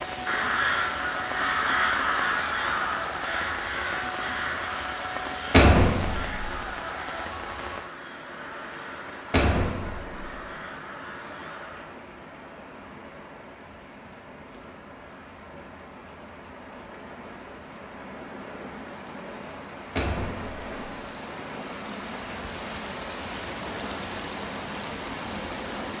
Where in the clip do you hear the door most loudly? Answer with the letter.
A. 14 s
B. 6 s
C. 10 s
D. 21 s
B.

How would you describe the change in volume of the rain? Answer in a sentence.
The loudness of the rain goes down, then up.